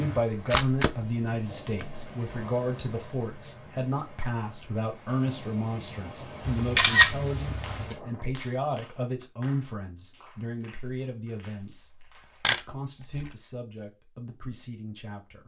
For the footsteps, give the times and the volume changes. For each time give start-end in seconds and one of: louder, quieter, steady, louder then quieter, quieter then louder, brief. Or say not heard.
not heard.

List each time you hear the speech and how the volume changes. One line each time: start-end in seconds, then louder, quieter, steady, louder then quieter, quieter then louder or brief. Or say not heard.
0.0-15.4 quieter.